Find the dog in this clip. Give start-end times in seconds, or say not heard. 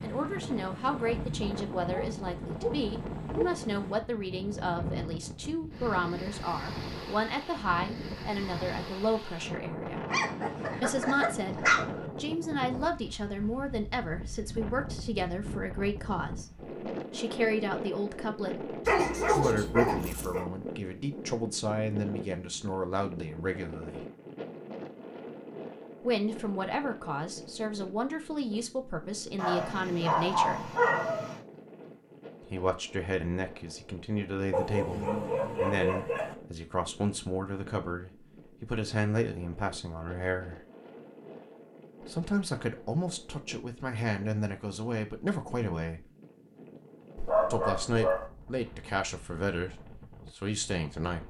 1.1-3.5, 10.1-12.1, 18.9-20.4, 29.4-31.4, 34.5-36.4, 47.1-48.3.